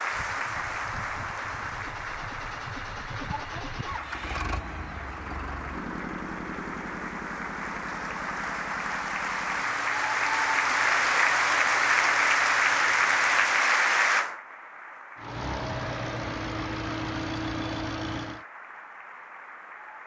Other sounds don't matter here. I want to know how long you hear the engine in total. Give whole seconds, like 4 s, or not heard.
17 s.